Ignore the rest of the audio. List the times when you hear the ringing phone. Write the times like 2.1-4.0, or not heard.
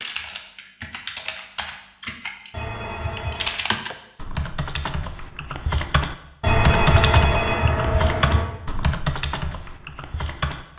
2.5-3.6, 6.4-8.4.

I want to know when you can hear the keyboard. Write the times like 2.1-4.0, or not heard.
0.0-10.7.